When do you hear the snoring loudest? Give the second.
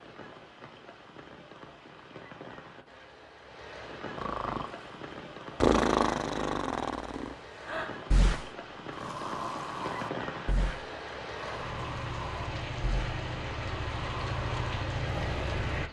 6 s.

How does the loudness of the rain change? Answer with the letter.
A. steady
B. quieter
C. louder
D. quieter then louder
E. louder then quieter
C.